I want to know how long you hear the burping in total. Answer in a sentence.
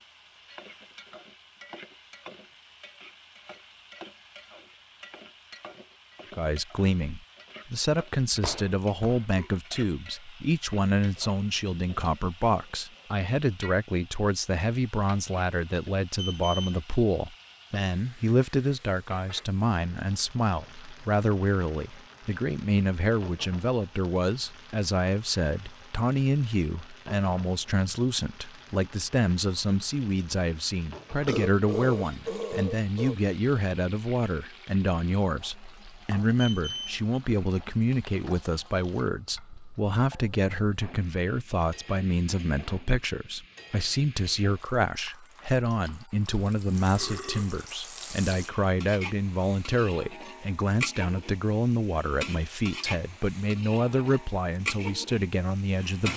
You can hear the burping for 4 seconds altogether.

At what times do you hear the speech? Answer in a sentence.
The speech can be heard from 6.3 to 56.1 s.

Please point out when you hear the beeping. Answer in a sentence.
You can hear the beeping from 16.1 to 16.8 s and from 36.4 to 37.0 s.